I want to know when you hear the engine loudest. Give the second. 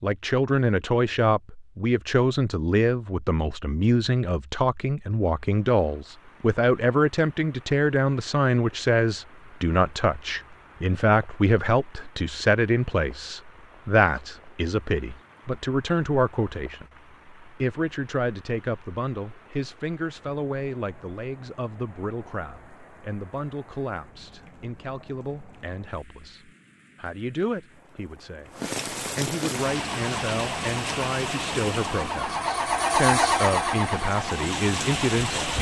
33 s.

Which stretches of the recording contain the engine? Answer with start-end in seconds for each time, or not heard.
29.6-35.5.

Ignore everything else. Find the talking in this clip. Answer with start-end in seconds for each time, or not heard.
0.0-35.5.